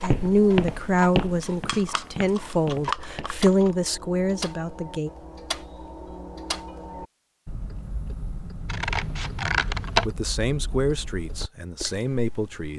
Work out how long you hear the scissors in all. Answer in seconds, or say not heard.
4 s.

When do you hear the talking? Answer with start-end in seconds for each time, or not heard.
0.0-5.1, 10.1-12.7.